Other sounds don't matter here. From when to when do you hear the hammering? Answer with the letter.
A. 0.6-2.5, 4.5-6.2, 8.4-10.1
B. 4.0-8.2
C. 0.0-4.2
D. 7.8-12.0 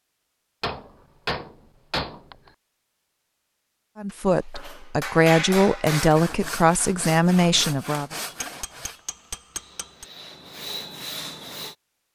A.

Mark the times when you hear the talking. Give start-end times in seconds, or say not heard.
4.0-8.2.